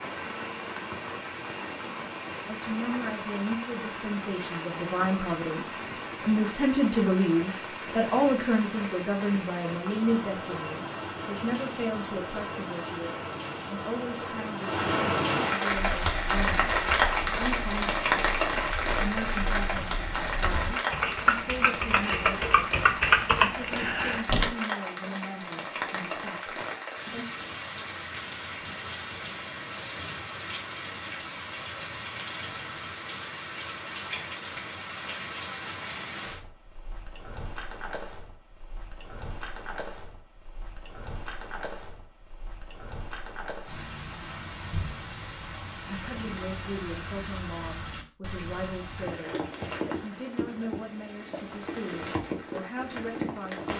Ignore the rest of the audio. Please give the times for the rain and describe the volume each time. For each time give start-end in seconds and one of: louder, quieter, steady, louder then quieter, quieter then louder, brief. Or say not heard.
0.0-53.7 louder then quieter.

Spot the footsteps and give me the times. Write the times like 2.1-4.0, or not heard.
not heard.